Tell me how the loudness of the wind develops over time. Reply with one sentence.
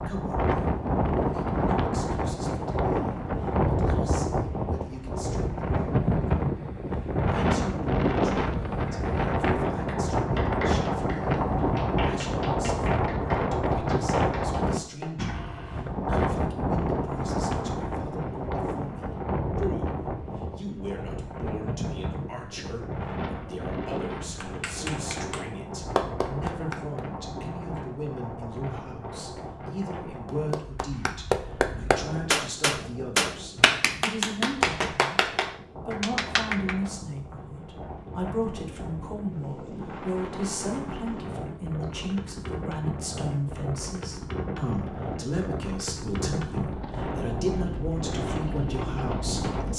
The volume of the wind goes down, then up.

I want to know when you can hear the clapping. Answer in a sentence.
You can hear the clapping from 8.8 to 15.2 s, from 24.4 to 27.1 s and from 30.2 to 36.8 s.